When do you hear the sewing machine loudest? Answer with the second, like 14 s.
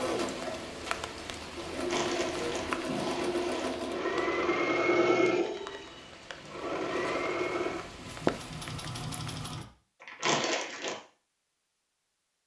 5 s.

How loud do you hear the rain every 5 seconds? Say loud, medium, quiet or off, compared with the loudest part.
loud, loud, off.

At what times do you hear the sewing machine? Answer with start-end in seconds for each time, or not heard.
0.0-9.7.